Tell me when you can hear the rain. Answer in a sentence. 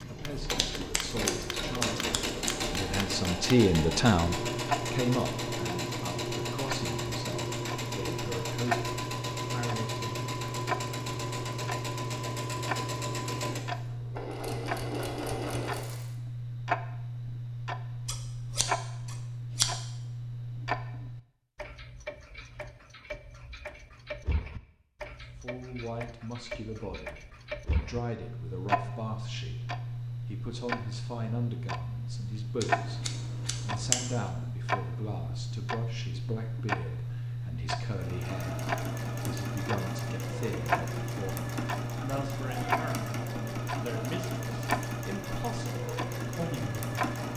The rain can't be heard in this clip.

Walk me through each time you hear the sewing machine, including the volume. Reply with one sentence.
You can hear the sewing machine from 0.0 to 16.1 s, at a steady volume; and from 37.9 to 47.3 s, at a steady volume.